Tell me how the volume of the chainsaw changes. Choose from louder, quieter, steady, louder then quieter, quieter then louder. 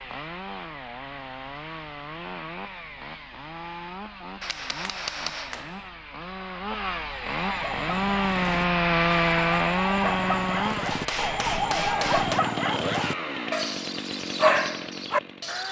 louder then quieter.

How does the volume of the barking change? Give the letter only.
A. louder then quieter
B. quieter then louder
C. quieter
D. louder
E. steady
D.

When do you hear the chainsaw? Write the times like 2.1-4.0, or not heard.
0.0-15.6.